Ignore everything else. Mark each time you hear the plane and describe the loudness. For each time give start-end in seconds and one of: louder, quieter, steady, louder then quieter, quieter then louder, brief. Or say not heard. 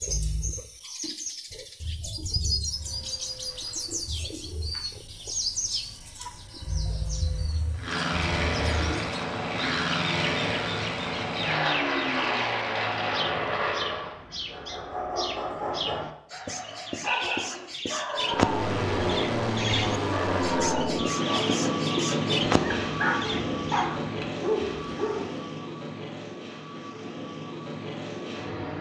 2.5-14.2 louder
18.1-28.7 quieter.